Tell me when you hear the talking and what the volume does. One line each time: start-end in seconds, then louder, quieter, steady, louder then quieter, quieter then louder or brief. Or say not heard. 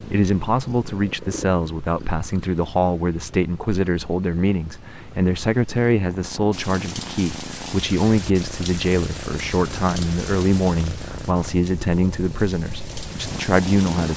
0.0-14.1 steady.